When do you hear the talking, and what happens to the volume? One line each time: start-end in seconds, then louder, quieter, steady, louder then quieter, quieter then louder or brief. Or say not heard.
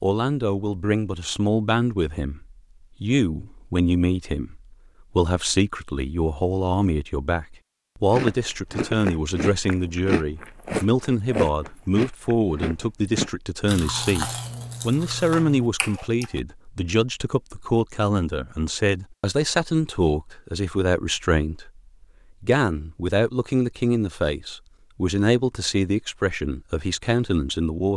0.0-21.8 steady
22.4-27.9 steady.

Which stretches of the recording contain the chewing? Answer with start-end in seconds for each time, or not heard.
8.1-16.4.